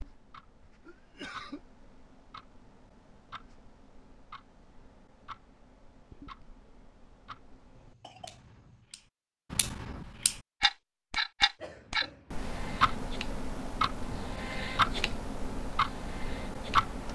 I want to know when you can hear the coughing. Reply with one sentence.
You can hear the coughing from 0.8 to 1.6 s, from 7.8 to 8.8 s and from 11.6 to 12.5 s.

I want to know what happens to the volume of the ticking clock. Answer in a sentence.
The volume of the ticking clock goes up.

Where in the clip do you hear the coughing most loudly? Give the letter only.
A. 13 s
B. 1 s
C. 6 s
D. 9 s
B.